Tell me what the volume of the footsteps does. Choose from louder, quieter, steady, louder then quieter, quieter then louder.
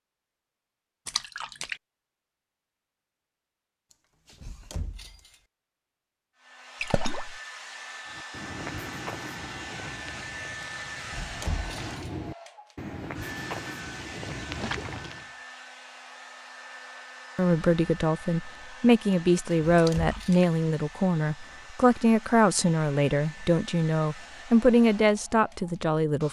quieter then louder.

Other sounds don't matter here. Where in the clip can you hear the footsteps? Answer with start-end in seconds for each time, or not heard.
8.1-15.3.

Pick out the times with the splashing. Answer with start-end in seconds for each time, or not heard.
1.1-1.8, 6.8-7.4, 14.5-15.3, 19.8-20.5.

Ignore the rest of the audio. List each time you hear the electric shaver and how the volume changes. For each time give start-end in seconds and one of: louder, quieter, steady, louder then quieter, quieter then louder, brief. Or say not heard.
not heard.